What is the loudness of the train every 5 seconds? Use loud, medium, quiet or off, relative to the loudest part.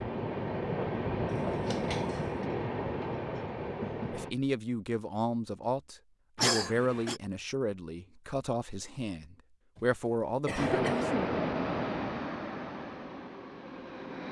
loud, off, loud.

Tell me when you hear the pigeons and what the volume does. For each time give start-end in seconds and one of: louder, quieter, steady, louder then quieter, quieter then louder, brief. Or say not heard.
not heard.